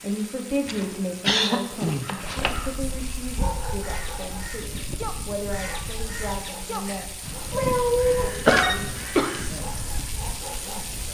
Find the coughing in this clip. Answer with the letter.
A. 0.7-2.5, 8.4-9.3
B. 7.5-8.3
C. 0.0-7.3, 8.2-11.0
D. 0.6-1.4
A.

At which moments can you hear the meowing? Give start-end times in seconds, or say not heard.
7.5-8.3.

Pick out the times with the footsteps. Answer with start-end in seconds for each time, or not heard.
not heard.